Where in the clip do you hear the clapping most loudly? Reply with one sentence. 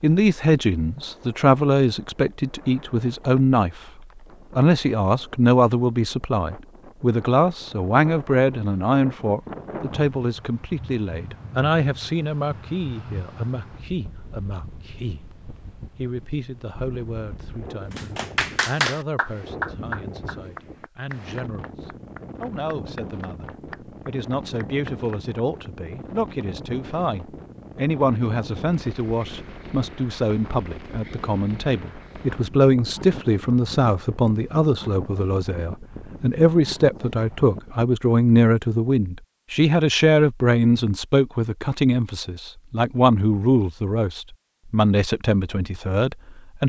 The volume of the clapping peaks at 19 seconds.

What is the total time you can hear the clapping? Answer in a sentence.
The clapping can be heard for 8 seconds in total.